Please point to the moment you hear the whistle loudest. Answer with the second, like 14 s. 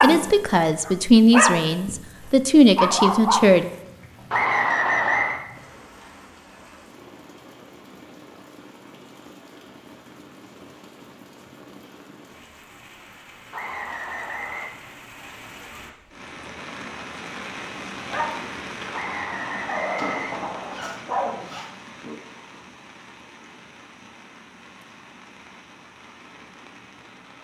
5 s.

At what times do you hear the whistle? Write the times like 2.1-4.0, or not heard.
4.3-5.4, 13.5-14.7, 18.9-20.9.